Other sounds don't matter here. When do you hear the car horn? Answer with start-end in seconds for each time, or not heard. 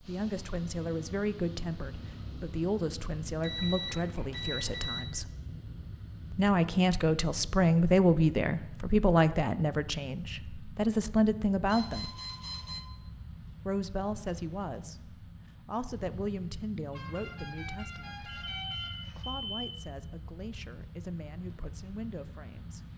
16.9-18.9.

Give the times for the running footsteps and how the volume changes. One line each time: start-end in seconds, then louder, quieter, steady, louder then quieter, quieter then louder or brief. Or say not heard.
not heard.